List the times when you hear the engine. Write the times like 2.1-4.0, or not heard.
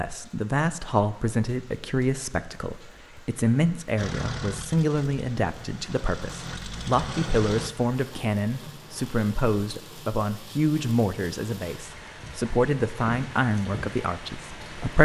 4.0-7.7.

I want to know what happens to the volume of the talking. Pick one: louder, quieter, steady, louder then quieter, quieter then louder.
steady.